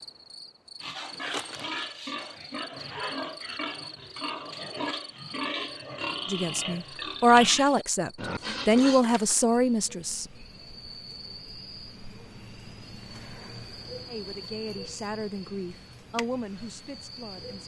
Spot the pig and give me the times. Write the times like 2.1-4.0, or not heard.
0.8-9.1.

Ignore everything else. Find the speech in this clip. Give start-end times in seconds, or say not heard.
6.2-10.2, 14.1-17.6.